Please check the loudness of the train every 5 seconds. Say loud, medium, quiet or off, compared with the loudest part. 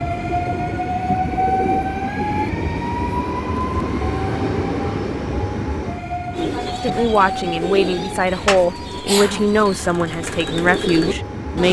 loud, medium, medium.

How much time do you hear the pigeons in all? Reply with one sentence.
The pigeons can be heard for 8 seconds in total.